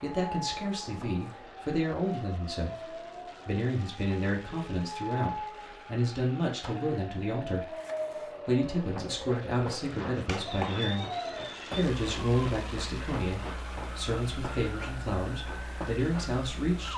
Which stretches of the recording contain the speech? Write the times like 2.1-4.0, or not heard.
0.0-7.8, 8.4-11.1, 11.7-16.9.